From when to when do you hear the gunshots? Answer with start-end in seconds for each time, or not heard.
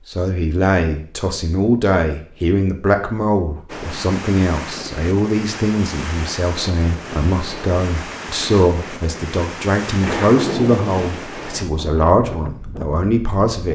10.0-11.1.